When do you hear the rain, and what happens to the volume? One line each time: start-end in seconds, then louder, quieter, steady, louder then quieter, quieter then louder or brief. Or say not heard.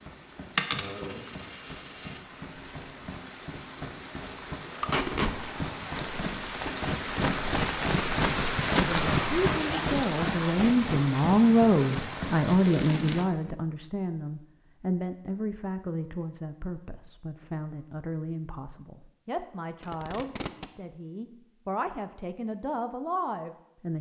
0.0-13.2 louder then quieter.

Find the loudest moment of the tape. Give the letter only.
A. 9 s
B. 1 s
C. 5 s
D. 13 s
C.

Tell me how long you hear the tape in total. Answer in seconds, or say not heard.
3 s.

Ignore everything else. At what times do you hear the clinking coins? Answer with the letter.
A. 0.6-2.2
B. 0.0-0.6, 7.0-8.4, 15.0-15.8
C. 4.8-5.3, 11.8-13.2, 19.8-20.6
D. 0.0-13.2
A.